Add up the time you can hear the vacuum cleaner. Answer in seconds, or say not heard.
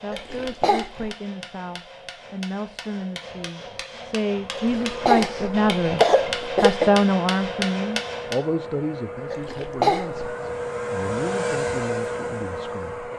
9 s.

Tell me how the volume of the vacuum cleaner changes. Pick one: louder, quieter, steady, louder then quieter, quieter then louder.
louder.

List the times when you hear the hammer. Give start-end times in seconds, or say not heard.
0.0-8.3.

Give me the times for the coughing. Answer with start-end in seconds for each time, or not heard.
0.1-1.1, 4.5-6.9, 9.3-10.3.